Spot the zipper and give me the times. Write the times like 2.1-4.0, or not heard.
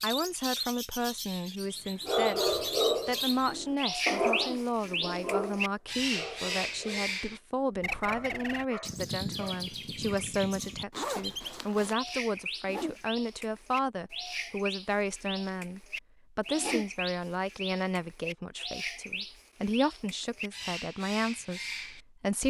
10.9-11.9.